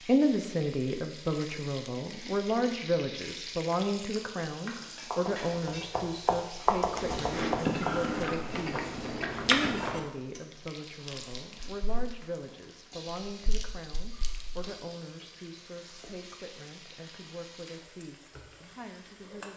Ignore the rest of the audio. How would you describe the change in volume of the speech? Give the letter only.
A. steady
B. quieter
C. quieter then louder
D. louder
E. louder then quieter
B.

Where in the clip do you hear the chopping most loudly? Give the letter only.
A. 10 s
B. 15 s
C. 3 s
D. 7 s
D.